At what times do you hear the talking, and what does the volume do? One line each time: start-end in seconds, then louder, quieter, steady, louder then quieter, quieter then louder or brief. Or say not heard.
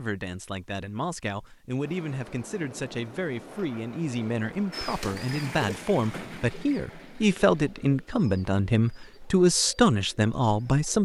0.0-11.0 louder.